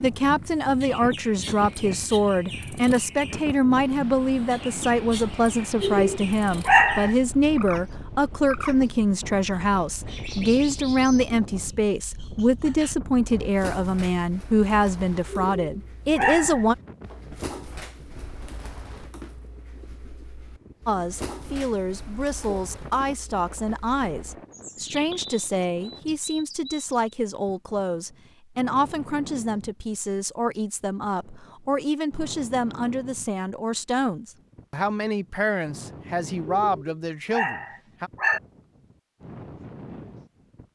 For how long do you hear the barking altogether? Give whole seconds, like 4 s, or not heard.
5 s.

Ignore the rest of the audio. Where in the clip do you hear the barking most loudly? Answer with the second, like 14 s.
7 s.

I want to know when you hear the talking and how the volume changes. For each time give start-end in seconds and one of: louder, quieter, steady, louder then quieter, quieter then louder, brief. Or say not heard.
0.0-16.8 steady
20.9-38.1 steady.